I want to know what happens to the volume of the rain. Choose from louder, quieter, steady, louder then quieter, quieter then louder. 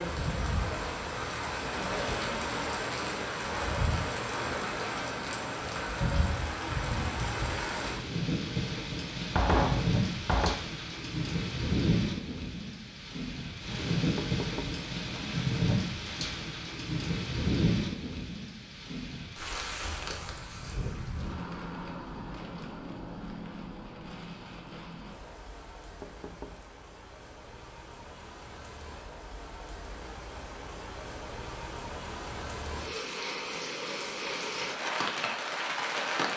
quieter then louder.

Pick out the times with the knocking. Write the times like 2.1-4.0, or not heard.
9.3-10.6, 14.0-14.8, 25.9-26.6.